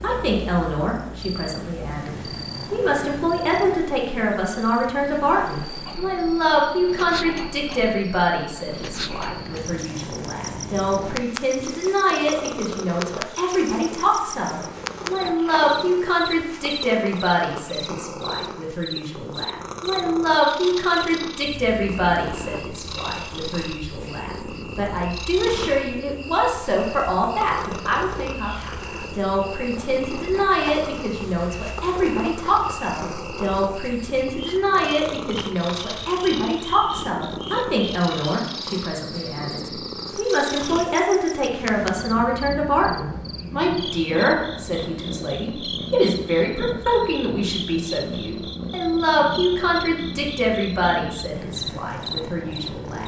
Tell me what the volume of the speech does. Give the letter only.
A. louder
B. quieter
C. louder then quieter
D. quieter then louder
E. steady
E.